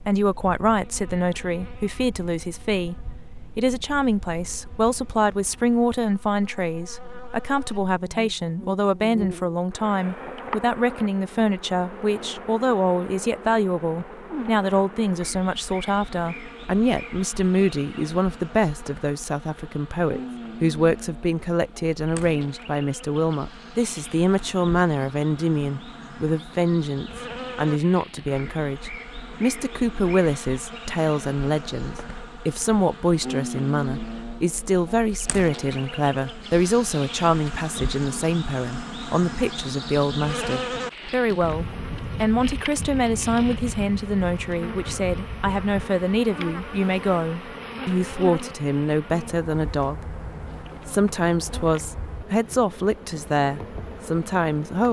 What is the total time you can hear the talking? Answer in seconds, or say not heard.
53 s.